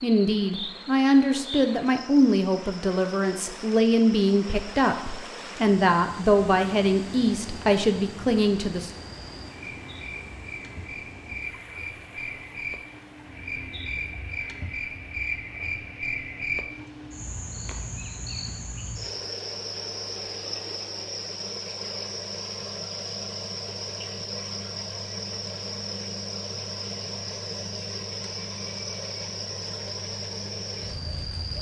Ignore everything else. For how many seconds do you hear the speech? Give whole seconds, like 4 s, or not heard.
9 s.